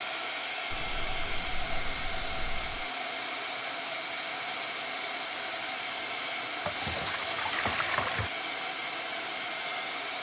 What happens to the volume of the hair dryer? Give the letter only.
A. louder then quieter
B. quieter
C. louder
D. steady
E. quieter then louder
D.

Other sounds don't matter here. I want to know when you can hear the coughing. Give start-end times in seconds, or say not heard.
not heard.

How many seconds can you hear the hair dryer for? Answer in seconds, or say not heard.
10 s.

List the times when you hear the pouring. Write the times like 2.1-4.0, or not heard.
0.7-2.9, 6.7-8.3.